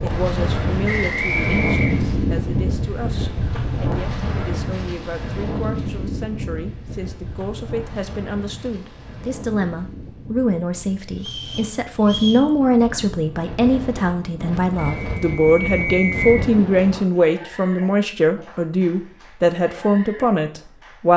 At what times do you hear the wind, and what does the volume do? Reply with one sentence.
You can hear the wind from 0.0 to 17.1 s, getting quieter then louder.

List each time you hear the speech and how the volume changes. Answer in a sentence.
You can hear the speech from 0.0 to 21.1 s, getting louder.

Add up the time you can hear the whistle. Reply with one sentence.
You can hear the whistle for 4 seconds altogether.